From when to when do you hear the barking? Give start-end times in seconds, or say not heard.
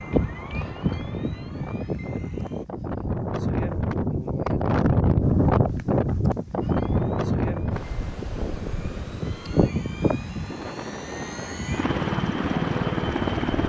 not heard.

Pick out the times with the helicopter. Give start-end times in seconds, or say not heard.
0.0-2.6, 6.6-13.6.